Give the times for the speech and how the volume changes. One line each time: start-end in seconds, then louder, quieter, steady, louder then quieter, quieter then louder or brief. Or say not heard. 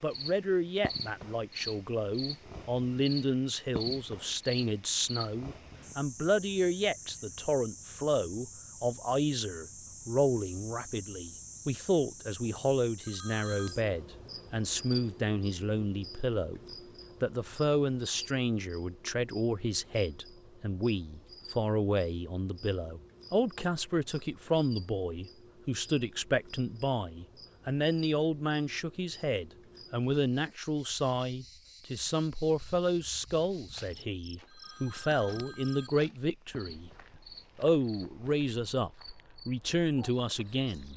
0.0-16.6 steady
17.2-40.9 steady.